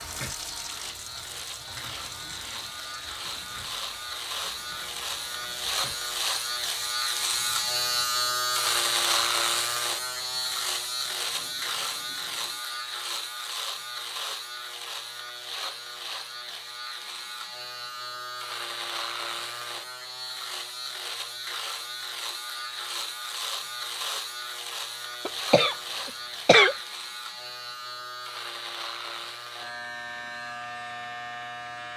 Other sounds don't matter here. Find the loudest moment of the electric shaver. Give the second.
9 s.